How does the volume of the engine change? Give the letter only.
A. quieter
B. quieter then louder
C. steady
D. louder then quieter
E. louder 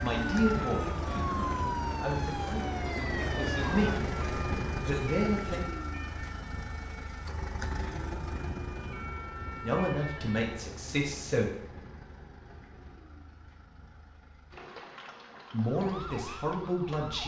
A.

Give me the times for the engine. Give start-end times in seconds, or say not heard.
0.0-17.1.